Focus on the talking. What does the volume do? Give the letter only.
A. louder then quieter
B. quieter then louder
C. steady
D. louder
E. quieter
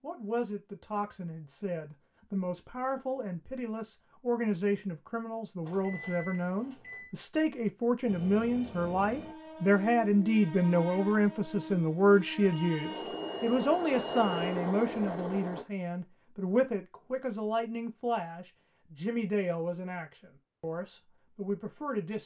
A.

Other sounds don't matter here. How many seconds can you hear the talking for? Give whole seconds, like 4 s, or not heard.
22 s.